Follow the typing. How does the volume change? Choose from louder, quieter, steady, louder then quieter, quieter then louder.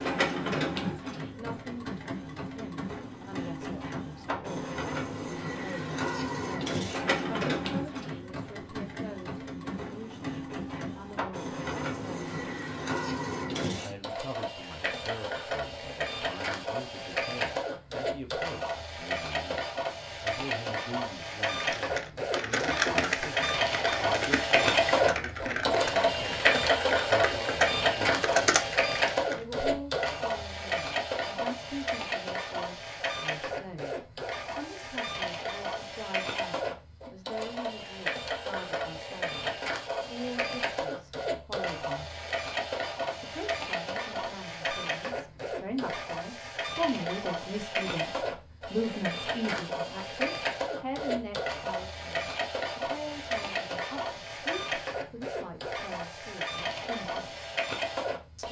quieter then louder.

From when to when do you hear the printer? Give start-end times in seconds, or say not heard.
0.0-58.4.